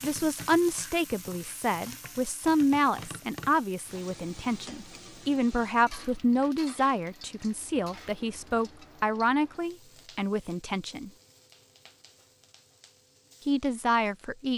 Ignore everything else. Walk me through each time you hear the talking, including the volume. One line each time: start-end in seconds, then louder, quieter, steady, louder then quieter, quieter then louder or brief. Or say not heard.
0.0-11.1 steady
13.4-14.5 brief.